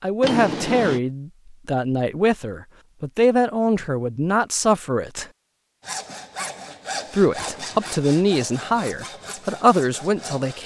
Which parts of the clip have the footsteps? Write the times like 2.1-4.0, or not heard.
not heard.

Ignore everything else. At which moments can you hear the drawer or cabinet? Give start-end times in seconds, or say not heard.
0.2-1.0, 7.3-8.0.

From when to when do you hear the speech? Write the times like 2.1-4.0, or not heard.
0.0-5.2, 7.1-10.6.